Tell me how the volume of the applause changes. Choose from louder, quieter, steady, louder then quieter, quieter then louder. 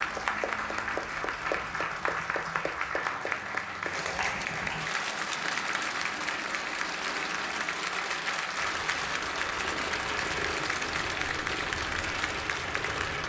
steady.